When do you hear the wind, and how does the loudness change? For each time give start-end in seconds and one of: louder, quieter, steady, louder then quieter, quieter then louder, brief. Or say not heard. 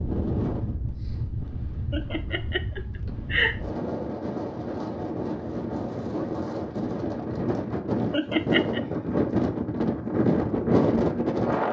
0.0-11.6 louder.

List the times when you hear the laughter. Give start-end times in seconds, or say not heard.
1.9-3.5, 8.1-8.8.